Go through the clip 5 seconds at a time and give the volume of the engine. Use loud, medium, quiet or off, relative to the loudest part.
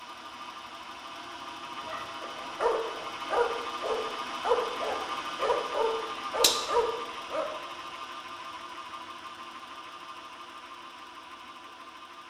loud, loud, medium.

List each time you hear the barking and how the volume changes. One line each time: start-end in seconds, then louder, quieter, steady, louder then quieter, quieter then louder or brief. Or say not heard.
1.9-7.5 steady.